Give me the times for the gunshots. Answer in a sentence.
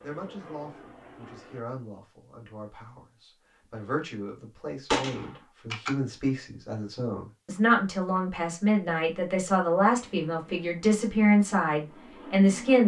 You can hear the gunshots from 4.9 to 5.9 s.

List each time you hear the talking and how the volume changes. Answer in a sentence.
The talking can be heard from 0.0 to 12.8 s, getting louder.